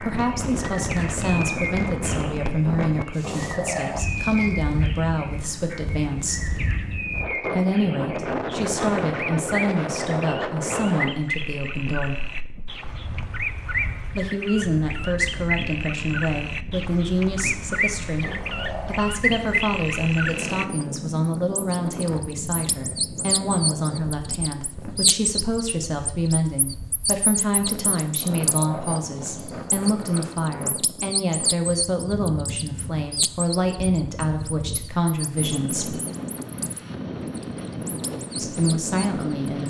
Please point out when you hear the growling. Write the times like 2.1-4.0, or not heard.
3.2-4.5, 18.2-19.0, 28.2-29.8.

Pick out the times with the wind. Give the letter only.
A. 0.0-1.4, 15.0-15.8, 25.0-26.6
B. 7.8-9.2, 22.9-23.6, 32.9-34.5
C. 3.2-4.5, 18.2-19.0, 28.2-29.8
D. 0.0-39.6
D.